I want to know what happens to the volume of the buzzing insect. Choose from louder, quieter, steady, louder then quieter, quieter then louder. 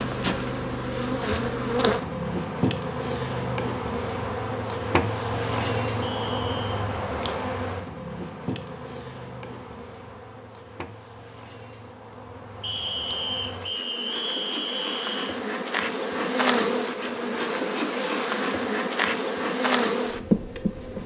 quieter then louder.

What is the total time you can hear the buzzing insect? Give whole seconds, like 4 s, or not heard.
21 s.